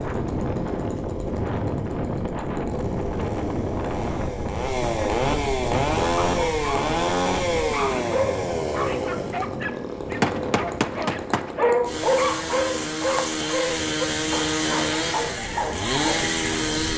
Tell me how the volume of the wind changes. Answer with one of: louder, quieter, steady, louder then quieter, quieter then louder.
quieter.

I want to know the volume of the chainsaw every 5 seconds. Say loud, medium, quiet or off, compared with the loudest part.
medium, loud, loud, loud.